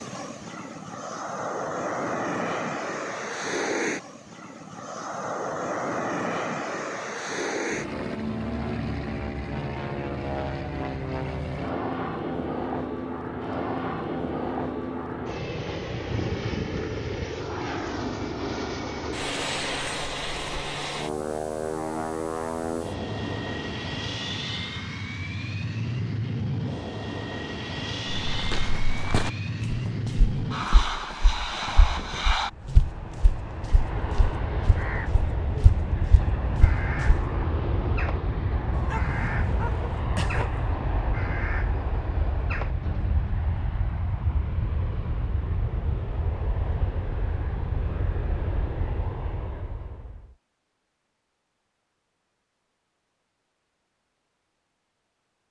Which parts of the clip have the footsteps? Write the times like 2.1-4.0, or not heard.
28.1-37.3.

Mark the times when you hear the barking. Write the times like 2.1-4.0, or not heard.
38.7-40.8.